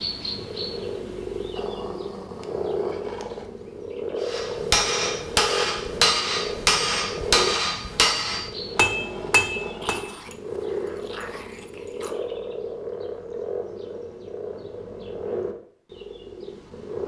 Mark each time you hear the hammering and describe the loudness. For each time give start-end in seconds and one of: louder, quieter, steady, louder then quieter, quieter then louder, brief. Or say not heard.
4.2-10.1 steady.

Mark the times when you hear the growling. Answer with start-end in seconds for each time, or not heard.
1.6-3.5, 9.8-12.2.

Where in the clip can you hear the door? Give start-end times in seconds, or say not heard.
not heard.